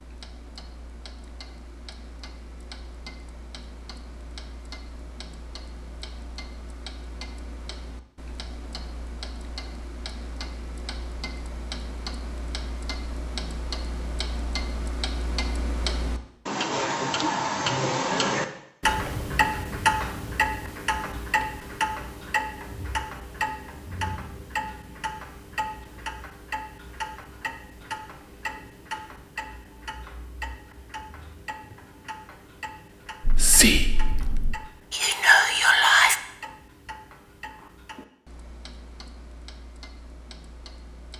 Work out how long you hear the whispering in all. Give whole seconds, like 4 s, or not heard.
3 s.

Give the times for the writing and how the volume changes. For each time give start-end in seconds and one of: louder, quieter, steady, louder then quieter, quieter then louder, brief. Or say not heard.
not heard.